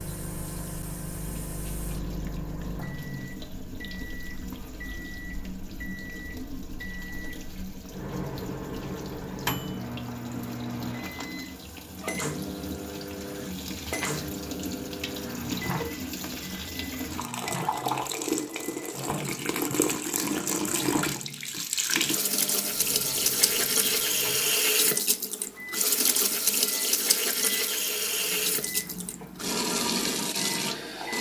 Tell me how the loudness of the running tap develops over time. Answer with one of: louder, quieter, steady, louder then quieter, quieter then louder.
louder.